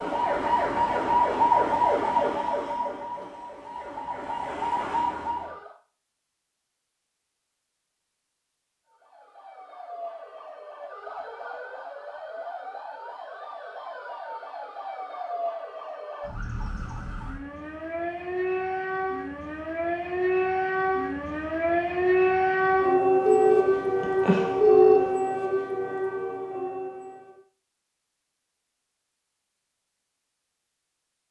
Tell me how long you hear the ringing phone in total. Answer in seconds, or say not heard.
2 s.